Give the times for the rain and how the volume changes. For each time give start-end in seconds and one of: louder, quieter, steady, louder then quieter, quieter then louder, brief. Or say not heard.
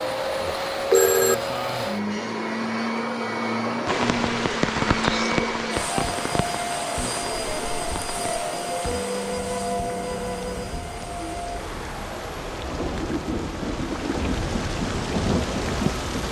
3.9-16.2 quieter then louder.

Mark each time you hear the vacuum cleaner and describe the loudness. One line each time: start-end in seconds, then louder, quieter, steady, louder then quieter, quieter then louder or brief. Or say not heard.
0.0-16.2 quieter.